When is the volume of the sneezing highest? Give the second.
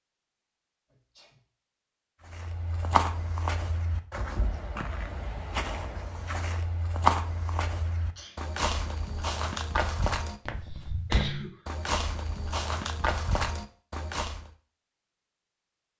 11 s.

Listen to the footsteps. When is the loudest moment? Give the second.
7 s.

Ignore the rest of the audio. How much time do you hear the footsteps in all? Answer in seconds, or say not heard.
12 s.